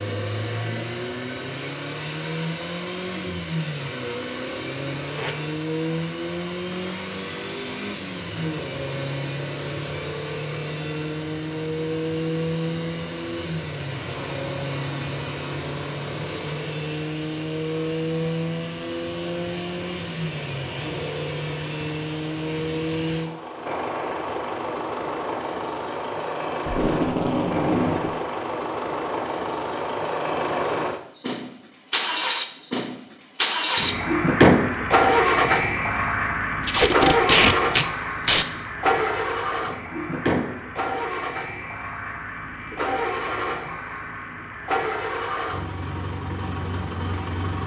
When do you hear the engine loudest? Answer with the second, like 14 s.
35 s.